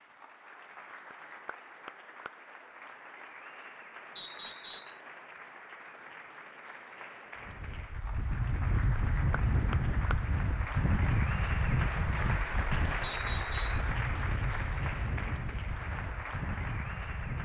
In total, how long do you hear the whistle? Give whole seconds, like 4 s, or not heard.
2 s.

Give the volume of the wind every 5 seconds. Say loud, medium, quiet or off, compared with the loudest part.
off, loud, loud, medium.